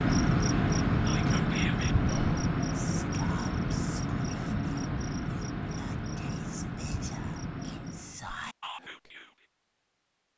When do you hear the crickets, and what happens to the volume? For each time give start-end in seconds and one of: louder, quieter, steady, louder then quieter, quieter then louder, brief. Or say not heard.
0.0-8.3 quieter.